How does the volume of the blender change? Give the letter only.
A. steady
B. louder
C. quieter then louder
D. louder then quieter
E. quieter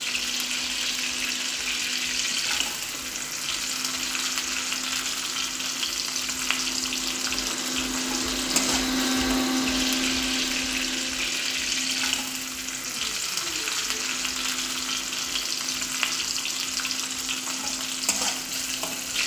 D.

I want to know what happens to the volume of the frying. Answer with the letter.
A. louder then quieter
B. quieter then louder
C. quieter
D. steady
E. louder
D.